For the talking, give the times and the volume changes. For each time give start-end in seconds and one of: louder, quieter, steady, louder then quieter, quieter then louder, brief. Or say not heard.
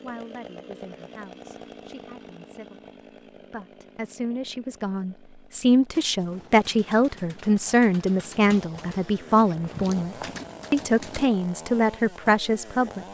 0.0-13.0 louder.